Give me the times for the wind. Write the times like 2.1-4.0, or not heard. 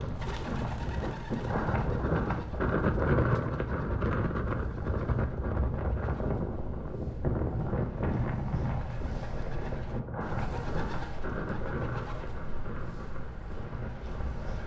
0.0-14.6.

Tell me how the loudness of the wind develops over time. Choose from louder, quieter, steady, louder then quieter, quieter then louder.
quieter.